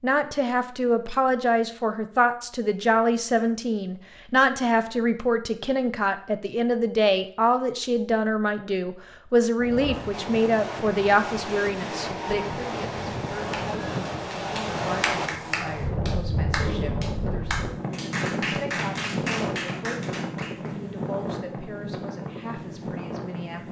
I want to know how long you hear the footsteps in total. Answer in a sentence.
The footsteps can't be heard in this clip.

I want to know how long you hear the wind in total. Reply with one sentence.
The wind can be heard for 14 seconds in total.